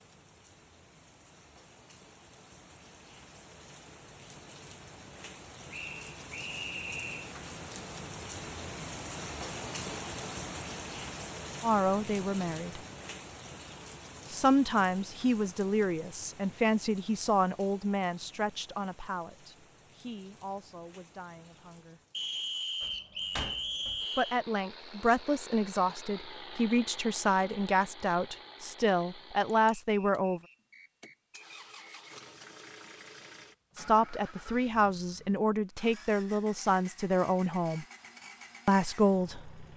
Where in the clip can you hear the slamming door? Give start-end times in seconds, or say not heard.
22.8-24.1.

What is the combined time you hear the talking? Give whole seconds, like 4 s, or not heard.
20 s.